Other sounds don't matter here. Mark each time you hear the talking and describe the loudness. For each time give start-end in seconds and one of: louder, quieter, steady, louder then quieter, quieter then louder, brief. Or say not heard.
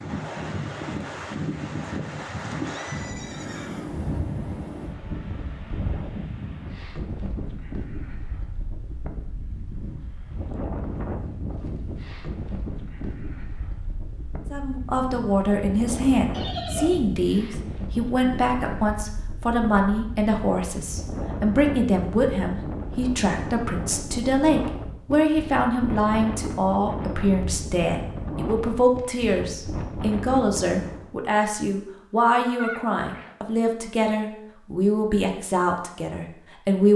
14.5-36.9 steady.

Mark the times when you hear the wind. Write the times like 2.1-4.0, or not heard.
0.0-31.1.